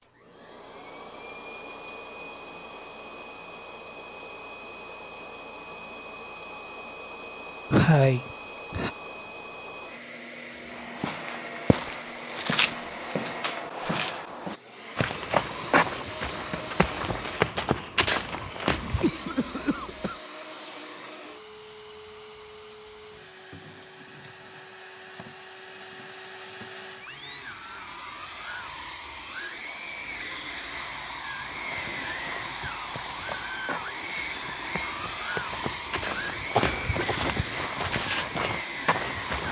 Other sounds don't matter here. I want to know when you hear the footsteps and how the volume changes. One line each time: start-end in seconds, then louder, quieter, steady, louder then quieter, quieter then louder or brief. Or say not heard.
10.7-19.1 louder
31.4-39.4 louder.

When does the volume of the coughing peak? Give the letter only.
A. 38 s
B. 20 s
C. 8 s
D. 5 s
C.